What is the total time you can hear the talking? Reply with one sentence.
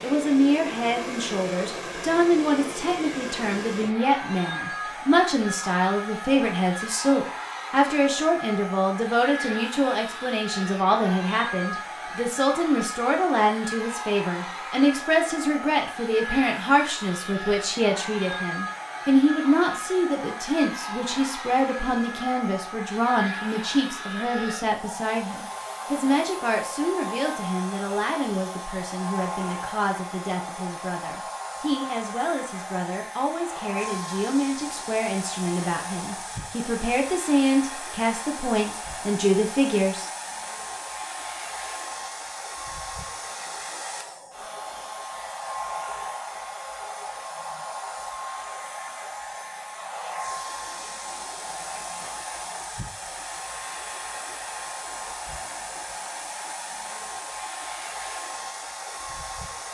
The talking can be heard for 40 seconds in total.